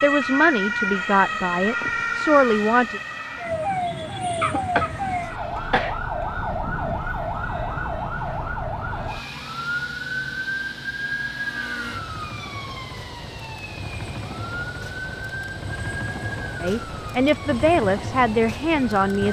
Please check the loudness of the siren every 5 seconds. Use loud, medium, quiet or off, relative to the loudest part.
loud, loud, medium, medium.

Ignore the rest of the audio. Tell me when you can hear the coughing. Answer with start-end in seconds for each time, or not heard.
4.4-6.0.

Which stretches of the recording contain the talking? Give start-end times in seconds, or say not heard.
0.0-3.0, 16.6-19.2.